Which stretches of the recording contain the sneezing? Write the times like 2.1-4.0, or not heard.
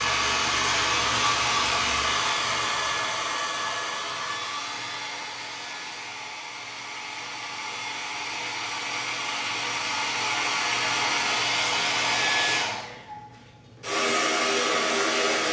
not heard.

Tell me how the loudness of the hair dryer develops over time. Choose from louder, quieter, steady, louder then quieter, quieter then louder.
quieter then louder.